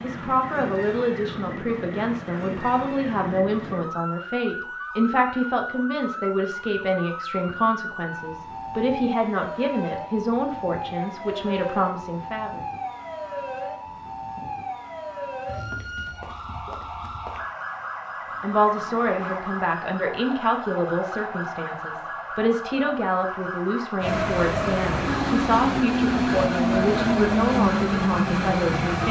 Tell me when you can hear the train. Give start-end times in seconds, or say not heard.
24.0-29.0.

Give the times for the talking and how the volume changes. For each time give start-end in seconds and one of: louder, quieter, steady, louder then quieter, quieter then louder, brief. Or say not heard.
0.0-12.6 steady
18.4-29.0 steady.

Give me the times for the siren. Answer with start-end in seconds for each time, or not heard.
0.0-29.0.